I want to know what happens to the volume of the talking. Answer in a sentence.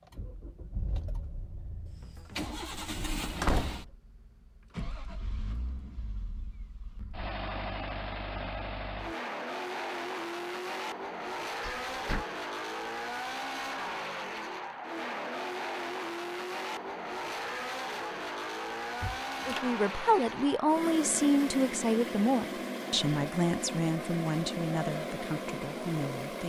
The volume of the talking goes down.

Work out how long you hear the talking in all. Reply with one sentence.
The talking can be heard for 7 seconds in total.